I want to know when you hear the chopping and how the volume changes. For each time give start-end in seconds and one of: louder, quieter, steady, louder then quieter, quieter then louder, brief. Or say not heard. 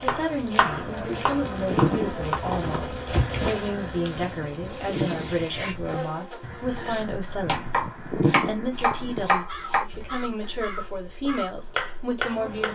0.0-2.4 brief
6.8-12.7 quieter then louder.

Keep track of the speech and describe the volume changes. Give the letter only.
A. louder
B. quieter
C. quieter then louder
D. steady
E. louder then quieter
D.